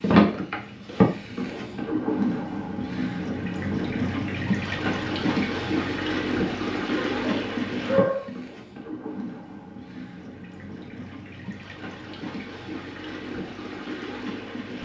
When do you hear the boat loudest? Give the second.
1 s.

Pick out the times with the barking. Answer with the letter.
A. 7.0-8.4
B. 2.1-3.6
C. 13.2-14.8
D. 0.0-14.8
A.